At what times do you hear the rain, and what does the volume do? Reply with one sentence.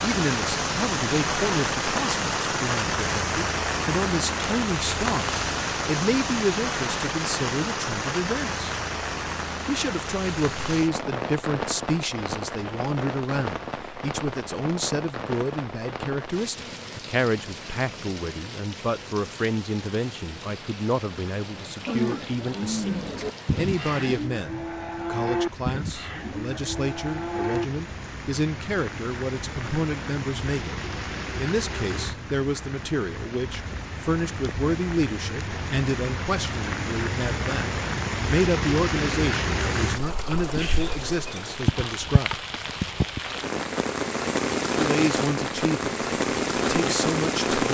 The rain can be heard from 0.0 to 47.6 s, getting quieter then louder.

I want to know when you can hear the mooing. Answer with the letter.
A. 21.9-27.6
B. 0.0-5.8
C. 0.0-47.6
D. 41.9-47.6
A.